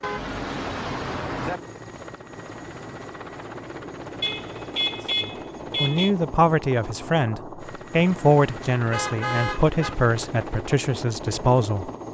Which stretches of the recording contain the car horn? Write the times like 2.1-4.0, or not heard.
0.0-1.6, 4.2-6.1, 8.9-9.9.